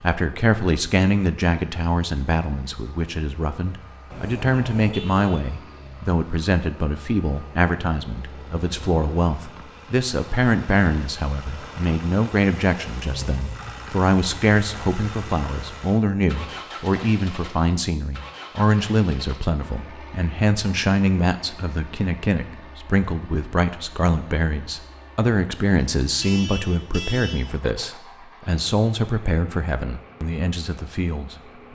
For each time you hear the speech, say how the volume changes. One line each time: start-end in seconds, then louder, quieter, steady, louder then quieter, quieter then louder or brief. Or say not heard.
0.0-31.6 steady.